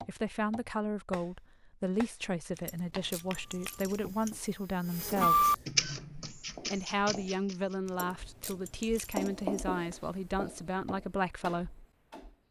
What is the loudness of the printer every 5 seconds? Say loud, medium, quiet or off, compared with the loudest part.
quiet, loud, off.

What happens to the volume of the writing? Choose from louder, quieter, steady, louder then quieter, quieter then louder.
louder then quieter.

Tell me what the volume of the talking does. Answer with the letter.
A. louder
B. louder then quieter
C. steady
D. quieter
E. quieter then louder
C.